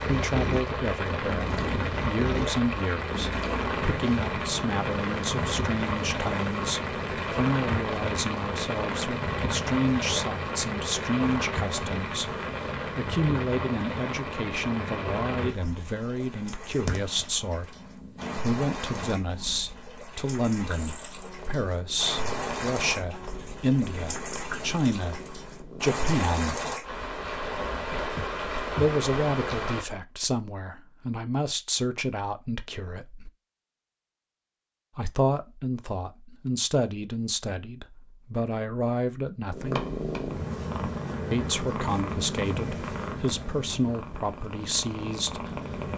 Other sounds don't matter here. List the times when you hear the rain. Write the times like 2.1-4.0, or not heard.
0.0-29.9.